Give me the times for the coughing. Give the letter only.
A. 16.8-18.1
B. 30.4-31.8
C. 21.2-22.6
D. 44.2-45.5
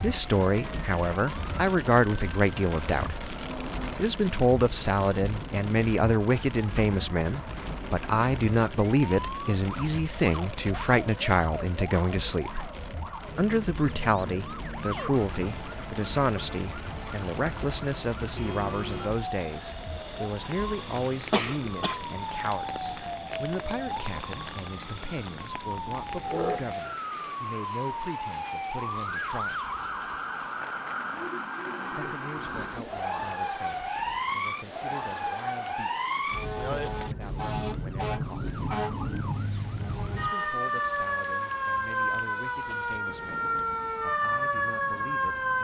C.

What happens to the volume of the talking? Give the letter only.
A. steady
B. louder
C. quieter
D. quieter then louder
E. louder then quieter
C.